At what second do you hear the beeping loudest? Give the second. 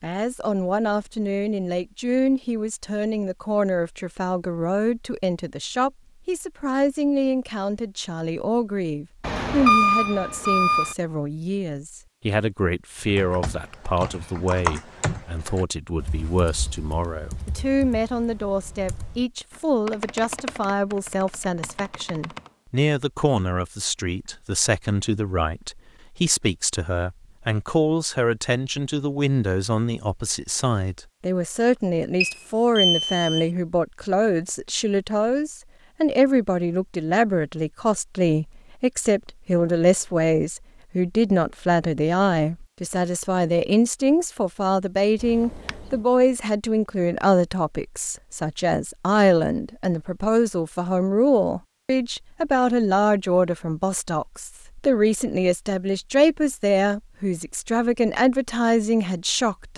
10 s.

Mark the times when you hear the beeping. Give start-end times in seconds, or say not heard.
9.2-10.9, 32.2-33.5, 45.2-46.0.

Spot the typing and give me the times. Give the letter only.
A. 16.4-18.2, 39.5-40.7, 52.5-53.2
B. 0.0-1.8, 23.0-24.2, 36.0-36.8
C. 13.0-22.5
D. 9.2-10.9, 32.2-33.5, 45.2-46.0
C.